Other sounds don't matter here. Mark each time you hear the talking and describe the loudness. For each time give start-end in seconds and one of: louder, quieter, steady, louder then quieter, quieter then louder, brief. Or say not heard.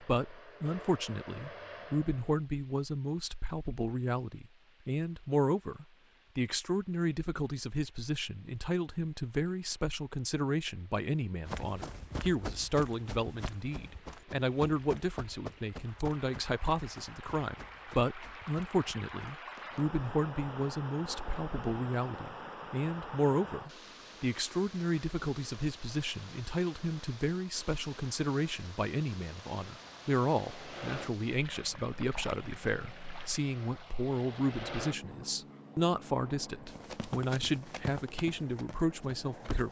0.0-39.6 steady.